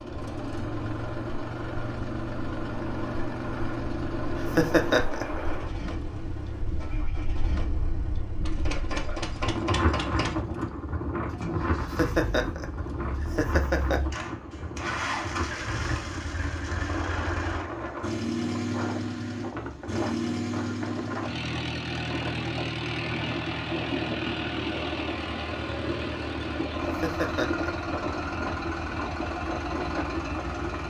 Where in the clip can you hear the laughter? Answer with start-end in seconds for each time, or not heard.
4.3-5.4, 11.8-14.0, 26.9-27.9.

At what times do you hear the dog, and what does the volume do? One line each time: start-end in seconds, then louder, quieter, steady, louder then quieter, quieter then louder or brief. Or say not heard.
not heard.